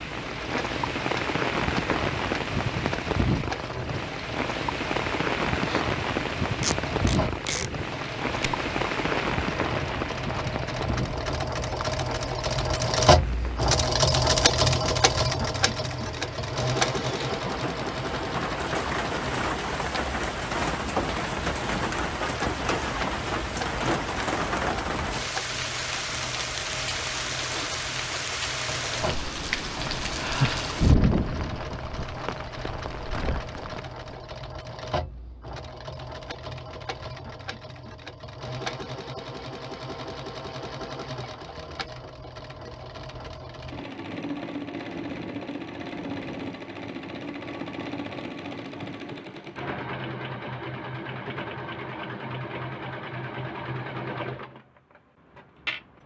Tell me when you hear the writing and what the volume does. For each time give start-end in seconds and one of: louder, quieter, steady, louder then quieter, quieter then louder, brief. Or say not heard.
not heard.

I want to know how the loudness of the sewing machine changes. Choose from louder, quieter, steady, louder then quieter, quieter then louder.
louder then quieter.